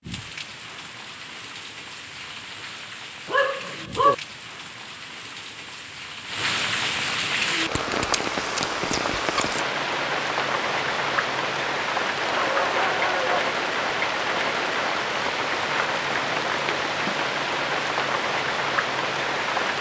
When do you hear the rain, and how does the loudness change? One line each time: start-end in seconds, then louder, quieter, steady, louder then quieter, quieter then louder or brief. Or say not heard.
0.0-19.7 louder.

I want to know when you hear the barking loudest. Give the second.
4 s.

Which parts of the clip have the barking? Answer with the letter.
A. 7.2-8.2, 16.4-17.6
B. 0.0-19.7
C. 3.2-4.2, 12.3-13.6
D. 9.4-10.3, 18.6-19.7
C.